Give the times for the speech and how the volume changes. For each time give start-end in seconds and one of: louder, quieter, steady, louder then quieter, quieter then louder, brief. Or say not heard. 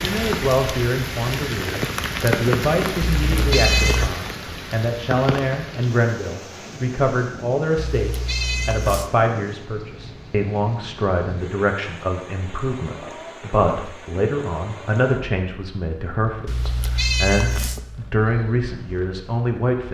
0.0-19.8 steady.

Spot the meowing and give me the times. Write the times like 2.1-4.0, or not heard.
3.1-4.1, 7.8-9.1, 16.4-17.9.